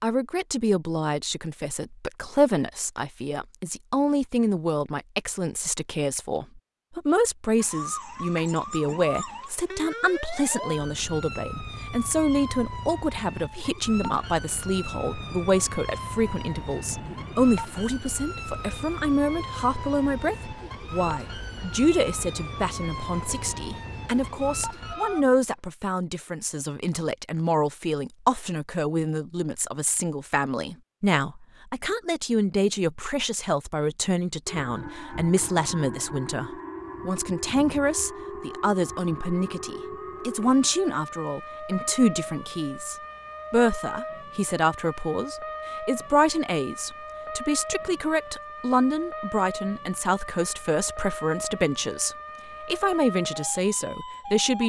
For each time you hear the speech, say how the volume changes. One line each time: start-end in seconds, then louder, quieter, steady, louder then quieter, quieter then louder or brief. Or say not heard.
0.0-54.6 steady.